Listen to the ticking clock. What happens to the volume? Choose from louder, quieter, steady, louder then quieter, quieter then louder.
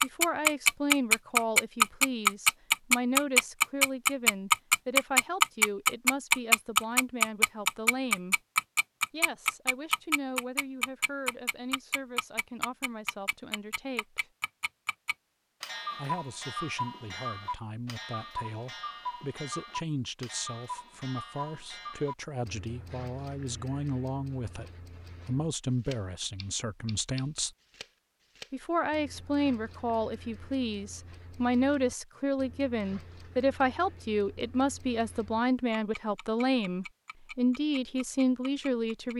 quieter.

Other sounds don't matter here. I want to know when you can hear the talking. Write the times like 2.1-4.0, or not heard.
0.0-8.3, 9.1-14.3, 15.9-27.6, 28.5-39.1.